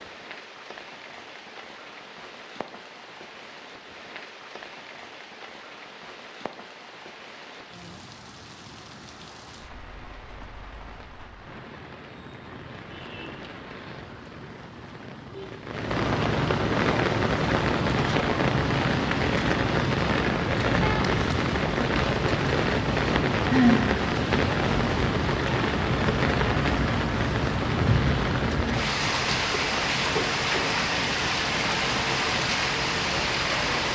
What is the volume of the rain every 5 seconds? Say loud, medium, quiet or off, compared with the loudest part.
quiet, quiet, quiet, loud, loud, loud, loud.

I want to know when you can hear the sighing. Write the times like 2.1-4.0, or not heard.
23.5-24.0.